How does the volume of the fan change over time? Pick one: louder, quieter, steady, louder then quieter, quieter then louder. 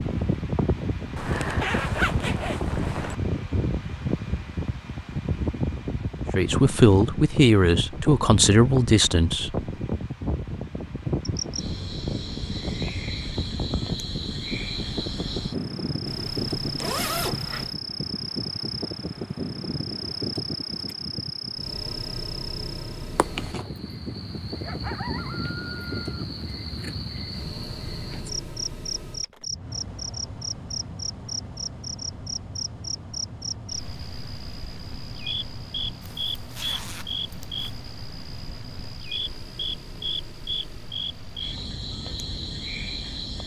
quieter.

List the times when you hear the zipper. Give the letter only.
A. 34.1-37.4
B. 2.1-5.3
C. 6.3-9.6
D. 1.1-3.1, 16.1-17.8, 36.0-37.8
D.